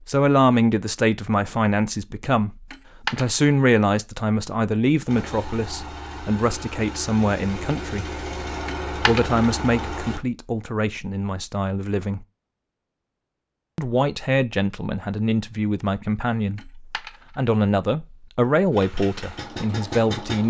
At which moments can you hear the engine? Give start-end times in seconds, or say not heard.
5.0-10.2, 18.7-20.4.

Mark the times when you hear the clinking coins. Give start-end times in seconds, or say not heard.
2.7-3.5, 8.7-9.3, 16.6-17.4.